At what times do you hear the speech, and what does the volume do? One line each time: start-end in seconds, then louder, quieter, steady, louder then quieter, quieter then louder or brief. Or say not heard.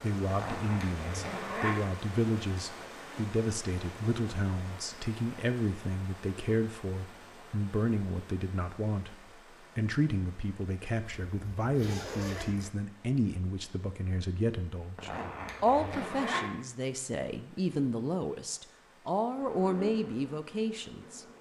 0.0-21.3 steady.